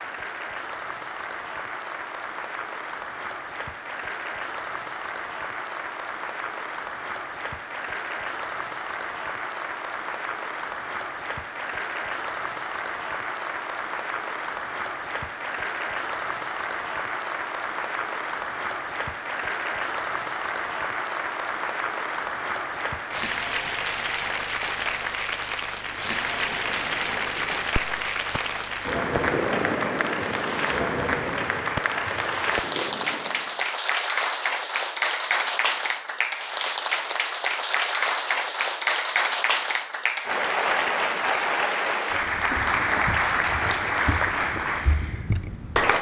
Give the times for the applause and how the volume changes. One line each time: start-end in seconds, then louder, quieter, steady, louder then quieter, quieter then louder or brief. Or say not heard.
0.0-45.9 louder.